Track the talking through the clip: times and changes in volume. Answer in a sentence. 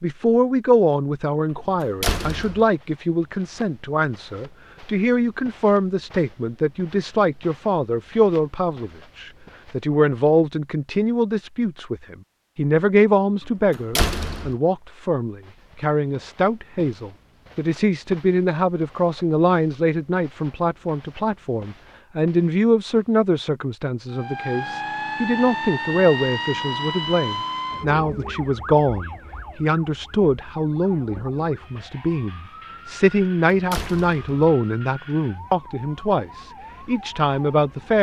You can hear the talking from 0.0 to 37.9 s, at a steady volume.